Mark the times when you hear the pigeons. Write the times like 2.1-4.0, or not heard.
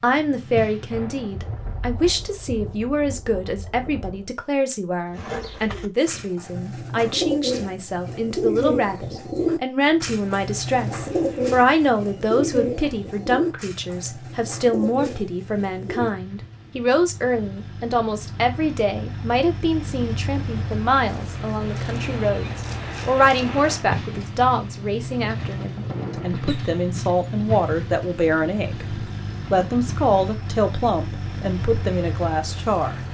5.1-16.1.